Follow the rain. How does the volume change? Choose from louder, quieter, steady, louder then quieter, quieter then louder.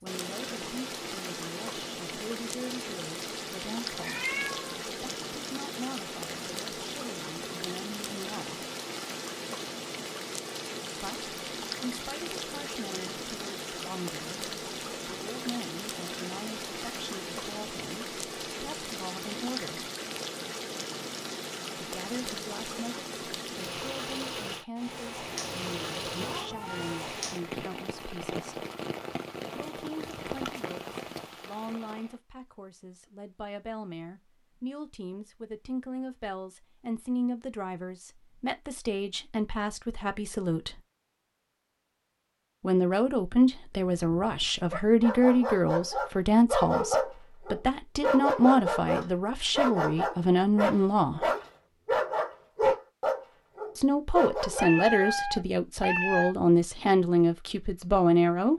steady.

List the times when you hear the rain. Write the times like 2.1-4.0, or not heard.
0.0-32.1.